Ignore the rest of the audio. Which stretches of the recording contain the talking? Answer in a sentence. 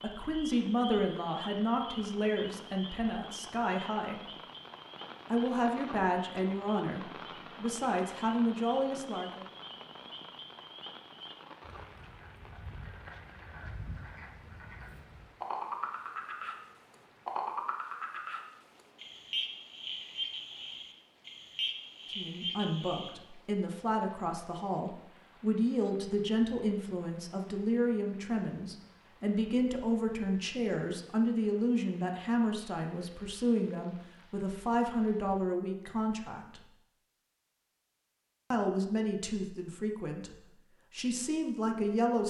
You can hear the talking from 0.0 to 4.3 s, from 5.3 to 9.4 s, from 22.1 to 36.6 s and from 38.5 to 42.2 s.